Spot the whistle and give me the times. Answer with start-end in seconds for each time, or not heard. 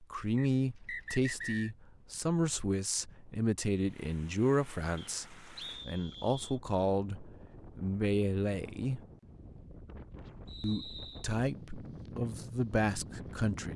0.3-1.7, 5.0-6.6, 10.4-11.3.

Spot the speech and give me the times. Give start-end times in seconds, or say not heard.
0.0-9.0, 10.6-13.7.